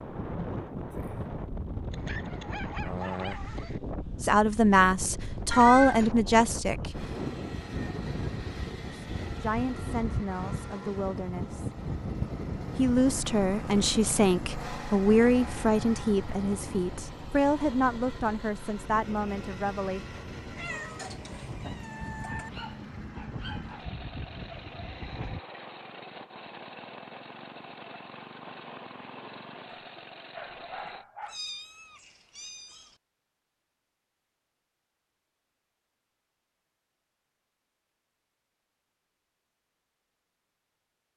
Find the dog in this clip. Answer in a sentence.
You can hear the dog from 1.9 to 3.8 s, from 22.2 to 23.9 s and from 29.8 to 31.4 s.